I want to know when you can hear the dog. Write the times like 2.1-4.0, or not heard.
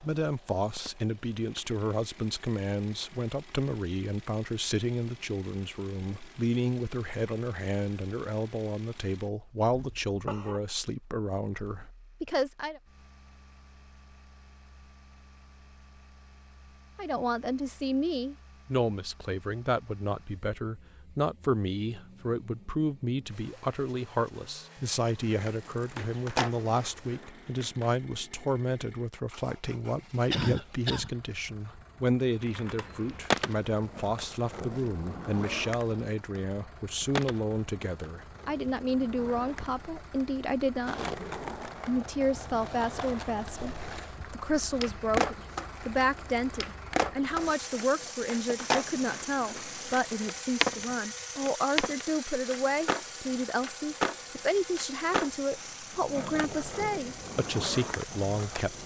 not heard.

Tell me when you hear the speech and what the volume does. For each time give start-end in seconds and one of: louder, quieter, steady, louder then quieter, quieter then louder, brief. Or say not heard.
0.0-12.8 steady
16.9-58.8 steady.